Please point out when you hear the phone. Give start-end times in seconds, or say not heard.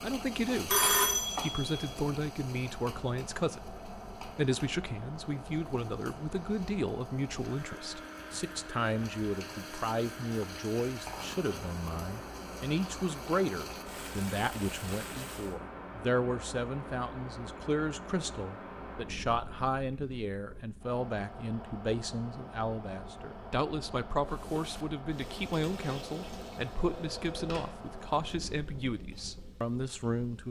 0.7-1.8, 26.8-27.8.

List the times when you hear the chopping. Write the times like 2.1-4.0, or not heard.
not heard.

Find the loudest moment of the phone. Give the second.
1 s.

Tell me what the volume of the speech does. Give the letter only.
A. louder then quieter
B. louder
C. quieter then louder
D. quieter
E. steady
E.